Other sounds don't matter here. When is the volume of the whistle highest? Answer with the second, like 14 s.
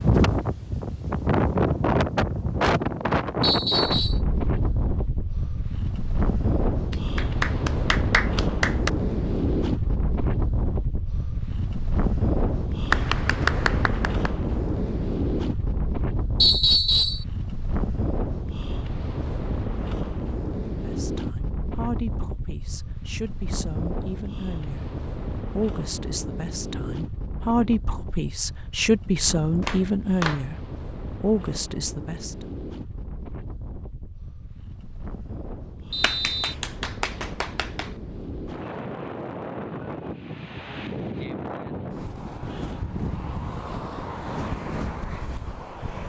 17 s.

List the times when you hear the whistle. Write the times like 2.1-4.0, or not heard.
3.4-4.2, 16.4-17.2, 35.9-36.5.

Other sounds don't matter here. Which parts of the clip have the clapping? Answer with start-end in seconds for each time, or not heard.
6.9-8.9, 12.9-14.3, 29.6-30.4, 36.0-37.9.